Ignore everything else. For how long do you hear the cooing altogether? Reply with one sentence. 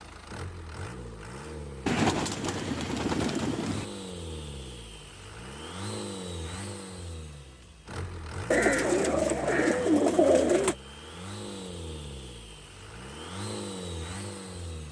The cooing can be heard for 4 seconds in total.